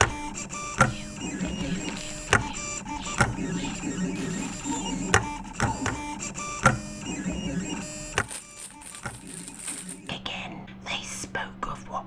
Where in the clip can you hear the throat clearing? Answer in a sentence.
You can't hear the throat clearing here.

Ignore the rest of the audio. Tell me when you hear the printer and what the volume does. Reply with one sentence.
You can hear the printer from 0.0 to 10.1 s, getting quieter.